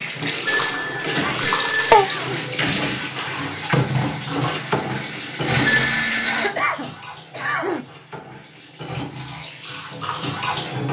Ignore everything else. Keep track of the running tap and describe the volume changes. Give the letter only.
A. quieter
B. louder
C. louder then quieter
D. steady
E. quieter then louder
E.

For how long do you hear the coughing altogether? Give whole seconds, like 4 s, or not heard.
3 s.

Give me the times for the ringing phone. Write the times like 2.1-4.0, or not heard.
0.5-2.0, 5.7-6.3.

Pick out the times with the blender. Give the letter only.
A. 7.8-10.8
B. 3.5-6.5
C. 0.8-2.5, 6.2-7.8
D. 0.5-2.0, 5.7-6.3
B.